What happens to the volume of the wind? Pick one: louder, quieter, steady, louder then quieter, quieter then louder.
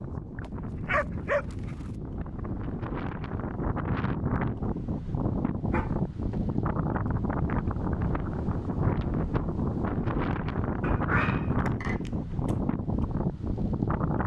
louder.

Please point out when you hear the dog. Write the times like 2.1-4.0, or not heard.
0.4-1.9, 5.7-6.6, 10.8-12.6.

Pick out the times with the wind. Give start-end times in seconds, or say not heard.
0.0-14.2.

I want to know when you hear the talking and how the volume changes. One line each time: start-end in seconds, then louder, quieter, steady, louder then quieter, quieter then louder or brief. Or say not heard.
not heard.